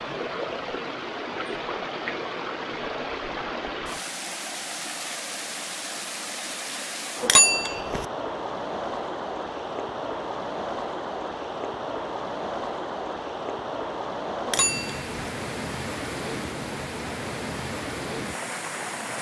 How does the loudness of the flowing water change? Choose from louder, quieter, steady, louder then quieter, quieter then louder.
steady.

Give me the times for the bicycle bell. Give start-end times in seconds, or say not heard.
7.2-8.1, 14.4-15.1.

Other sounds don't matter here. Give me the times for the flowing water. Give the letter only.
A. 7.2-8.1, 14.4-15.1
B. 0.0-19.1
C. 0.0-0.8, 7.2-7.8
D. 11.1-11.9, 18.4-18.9
B.